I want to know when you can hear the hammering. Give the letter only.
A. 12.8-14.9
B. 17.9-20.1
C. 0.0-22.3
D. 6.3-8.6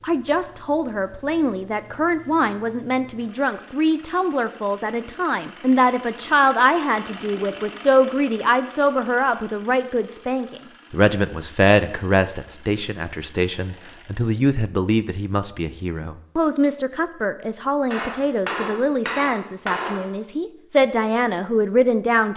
B.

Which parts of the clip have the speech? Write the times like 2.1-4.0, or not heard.
0.0-22.3.